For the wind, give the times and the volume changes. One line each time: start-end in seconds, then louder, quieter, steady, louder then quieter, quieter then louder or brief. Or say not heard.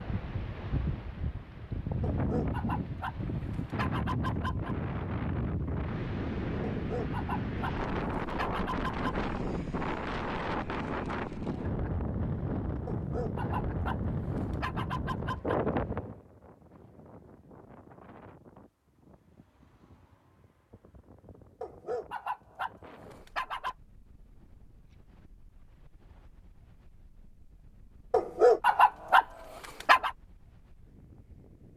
0.0-31.7 quieter.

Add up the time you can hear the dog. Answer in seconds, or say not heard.
12 s.